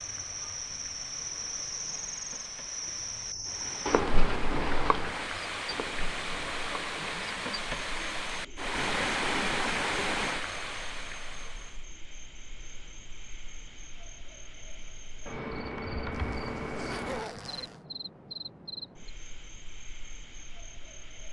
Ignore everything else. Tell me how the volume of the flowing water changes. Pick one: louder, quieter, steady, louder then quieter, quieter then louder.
louder.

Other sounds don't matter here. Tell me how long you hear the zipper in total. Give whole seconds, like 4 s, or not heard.
2 s.